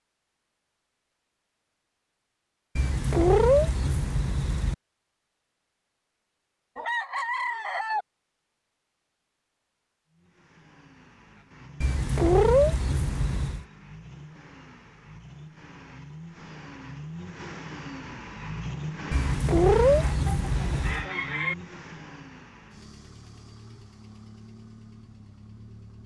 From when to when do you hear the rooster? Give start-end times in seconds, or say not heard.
6.8-8.1, 20.1-21.6.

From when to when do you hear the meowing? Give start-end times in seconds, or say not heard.
2.8-4.8, 11.8-13.7, 19.1-21.1.